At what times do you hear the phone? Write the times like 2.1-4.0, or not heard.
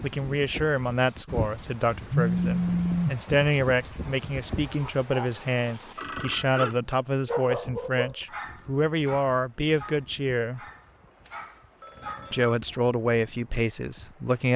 2.1-3.1, 6.0-6.8, 11.2-12.6.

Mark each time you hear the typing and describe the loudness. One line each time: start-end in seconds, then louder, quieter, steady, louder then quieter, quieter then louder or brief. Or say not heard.
not heard.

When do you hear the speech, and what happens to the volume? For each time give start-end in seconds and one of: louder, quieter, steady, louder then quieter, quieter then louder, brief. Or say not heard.
0.0-10.6 steady
12.3-14.5 brief.